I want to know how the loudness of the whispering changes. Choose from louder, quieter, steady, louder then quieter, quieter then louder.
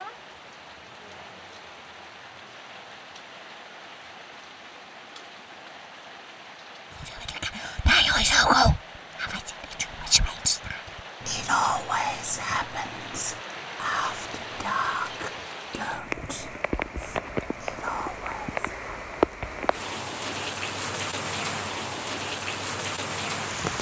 quieter.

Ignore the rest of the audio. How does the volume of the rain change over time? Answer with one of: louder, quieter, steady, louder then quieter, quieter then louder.
louder.